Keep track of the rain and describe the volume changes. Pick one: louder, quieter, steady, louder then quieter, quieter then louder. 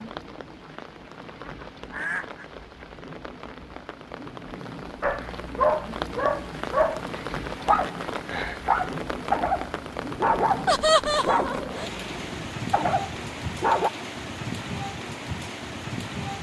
louder.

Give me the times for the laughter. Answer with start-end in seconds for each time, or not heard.
10.7-11.9.